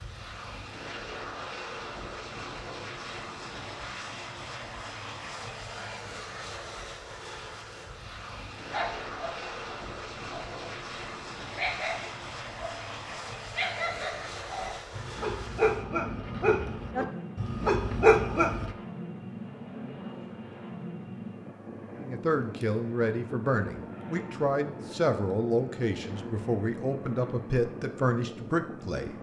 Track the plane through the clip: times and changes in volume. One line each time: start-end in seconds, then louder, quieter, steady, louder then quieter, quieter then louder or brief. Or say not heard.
0.0-29.1 steady.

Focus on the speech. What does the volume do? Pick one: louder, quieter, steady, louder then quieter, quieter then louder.
steady.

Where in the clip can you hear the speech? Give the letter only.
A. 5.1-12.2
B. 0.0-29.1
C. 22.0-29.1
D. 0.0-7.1
C.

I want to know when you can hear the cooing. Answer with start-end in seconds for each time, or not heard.
not heard.